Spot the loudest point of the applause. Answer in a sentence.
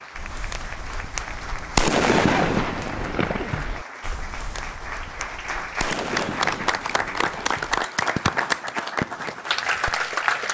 The loudest moment of the applause is at 8 seconds.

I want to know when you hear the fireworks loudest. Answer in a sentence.
The loudest moment of the fireworks is at 2 seconds.